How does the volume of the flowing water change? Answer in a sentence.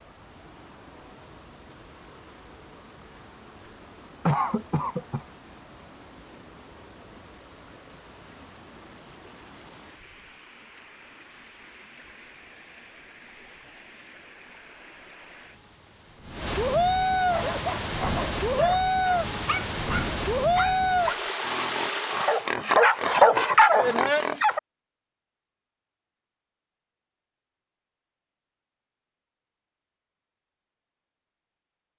The loudness of the flowing water goes up.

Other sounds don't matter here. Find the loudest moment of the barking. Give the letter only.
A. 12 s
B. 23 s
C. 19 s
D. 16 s
B.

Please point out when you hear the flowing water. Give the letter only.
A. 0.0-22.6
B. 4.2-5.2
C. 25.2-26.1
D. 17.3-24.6
A.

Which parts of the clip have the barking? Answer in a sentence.
You can hear the barking from 17.3 to 24.6 s.